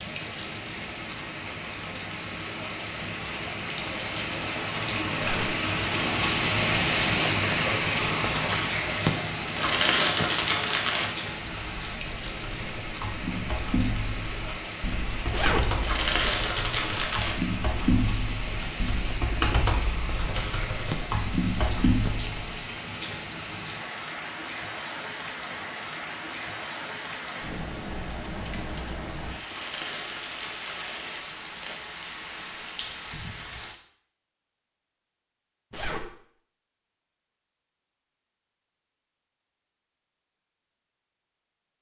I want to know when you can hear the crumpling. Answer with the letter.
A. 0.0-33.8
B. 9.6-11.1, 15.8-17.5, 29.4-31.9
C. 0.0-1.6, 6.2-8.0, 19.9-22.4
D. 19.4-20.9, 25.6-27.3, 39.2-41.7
B.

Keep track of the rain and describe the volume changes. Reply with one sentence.
The loudness of the rain goes down.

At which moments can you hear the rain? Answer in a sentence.
The rain can be heard from 0.0 to 33.8 s.